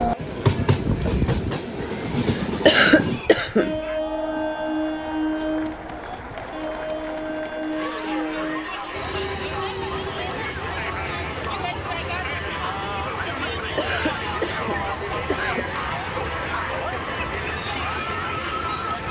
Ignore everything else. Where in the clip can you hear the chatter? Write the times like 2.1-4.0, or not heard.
0.0-19.0.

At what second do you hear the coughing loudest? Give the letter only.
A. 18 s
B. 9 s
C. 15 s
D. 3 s
D.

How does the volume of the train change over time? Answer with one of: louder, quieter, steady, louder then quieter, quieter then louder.
quieter.